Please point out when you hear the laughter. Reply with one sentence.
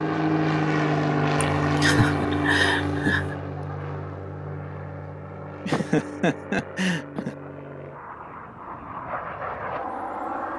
The laughter can be heard from 1.6 to 3.4 s and from 5.7 to 7.3 s.